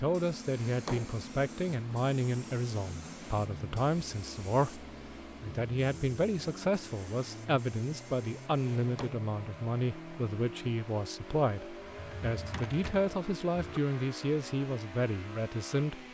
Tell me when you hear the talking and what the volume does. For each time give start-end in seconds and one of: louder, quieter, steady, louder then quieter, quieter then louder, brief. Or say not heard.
0.0-16.0 steady.